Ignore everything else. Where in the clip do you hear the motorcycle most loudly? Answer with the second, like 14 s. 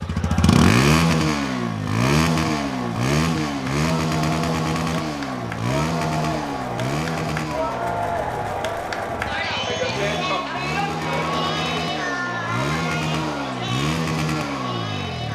1 s.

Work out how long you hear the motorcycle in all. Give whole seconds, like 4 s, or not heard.
15 s.